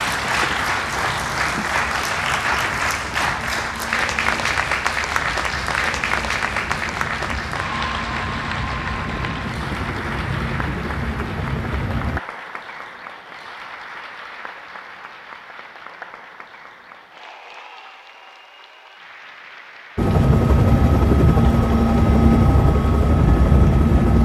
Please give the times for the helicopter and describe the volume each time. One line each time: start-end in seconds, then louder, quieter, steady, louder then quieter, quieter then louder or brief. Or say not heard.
0.0-12.2 louder
19.9-24.1 steady.